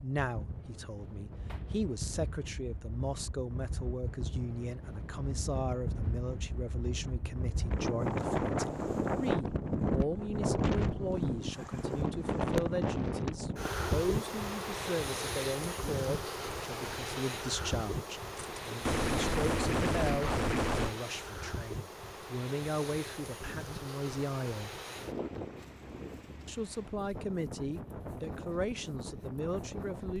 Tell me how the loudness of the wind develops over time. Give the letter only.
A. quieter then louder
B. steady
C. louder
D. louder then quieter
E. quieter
D.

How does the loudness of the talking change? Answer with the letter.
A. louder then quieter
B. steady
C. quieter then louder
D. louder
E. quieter
B.